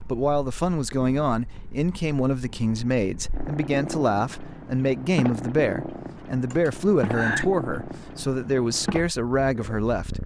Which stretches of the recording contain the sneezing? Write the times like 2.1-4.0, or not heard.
6.5-7.5.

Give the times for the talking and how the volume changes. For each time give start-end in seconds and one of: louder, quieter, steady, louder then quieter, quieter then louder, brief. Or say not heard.
0.1-10.2 steady.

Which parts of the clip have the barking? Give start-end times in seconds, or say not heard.
not heard.